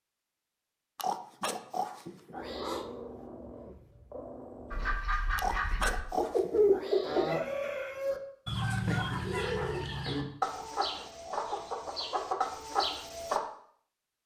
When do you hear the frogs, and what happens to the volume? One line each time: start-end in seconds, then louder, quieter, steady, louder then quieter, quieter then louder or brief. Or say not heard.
not heard.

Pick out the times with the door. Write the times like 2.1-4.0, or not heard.
not heard.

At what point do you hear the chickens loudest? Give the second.
7 s.